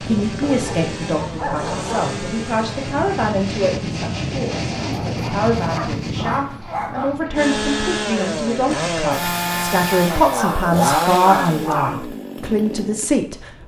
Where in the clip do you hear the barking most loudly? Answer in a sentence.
The loudest moment of the barking is at 11 seconds.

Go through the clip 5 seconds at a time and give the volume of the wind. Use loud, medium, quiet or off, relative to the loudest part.
loud, loud, off.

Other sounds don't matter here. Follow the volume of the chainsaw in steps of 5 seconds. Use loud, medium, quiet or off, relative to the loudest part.
medium, loud, loud.